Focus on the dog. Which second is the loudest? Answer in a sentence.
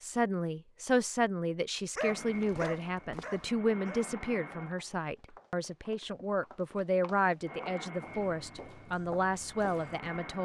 The volume of the dog peaks at 2 seconds.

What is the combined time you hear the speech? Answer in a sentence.
You can hear the speech for 10 seconds altogether.